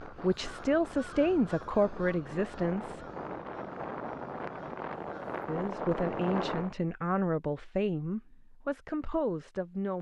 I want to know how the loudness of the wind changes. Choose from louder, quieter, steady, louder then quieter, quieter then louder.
louder.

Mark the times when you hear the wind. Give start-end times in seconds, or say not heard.
0.0-6.8.